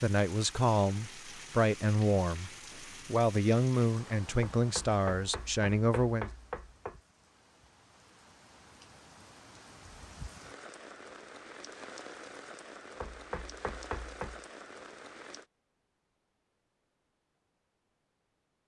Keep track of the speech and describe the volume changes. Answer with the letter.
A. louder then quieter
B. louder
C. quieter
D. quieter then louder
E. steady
E.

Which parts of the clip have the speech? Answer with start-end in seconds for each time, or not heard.
0.0-6.3.